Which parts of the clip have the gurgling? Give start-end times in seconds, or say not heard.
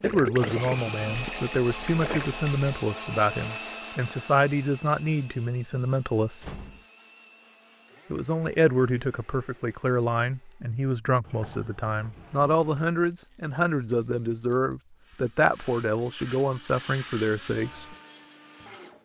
0.0-2.3.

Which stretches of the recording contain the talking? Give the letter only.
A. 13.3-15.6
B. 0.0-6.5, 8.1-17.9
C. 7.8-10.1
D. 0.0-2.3
B.